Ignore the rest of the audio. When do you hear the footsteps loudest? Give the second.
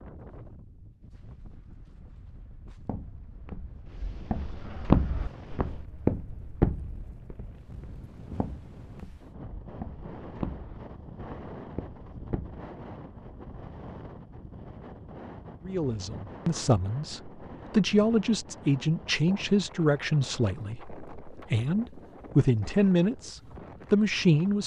5 s.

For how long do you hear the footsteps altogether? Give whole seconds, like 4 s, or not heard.
10 s.